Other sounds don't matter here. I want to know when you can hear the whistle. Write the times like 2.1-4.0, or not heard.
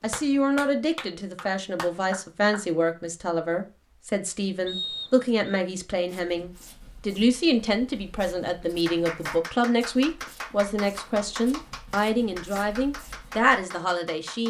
4.7-5.6.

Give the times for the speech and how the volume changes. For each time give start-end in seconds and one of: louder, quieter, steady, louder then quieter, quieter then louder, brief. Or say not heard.
0.0-14.4 steady.